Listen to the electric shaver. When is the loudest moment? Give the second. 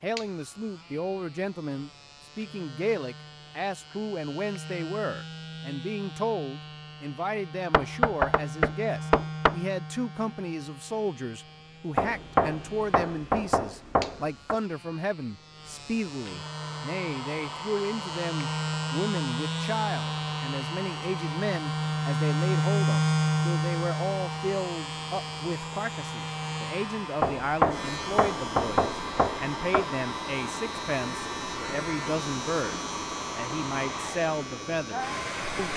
23 s.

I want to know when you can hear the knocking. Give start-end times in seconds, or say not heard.
7.7-9.6, 11.9-14.6, 27.2-29.9.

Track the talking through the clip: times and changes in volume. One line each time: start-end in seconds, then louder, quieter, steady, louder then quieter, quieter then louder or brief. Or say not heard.
0.0-35.7 steady.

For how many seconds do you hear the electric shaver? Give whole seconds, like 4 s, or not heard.
36 s.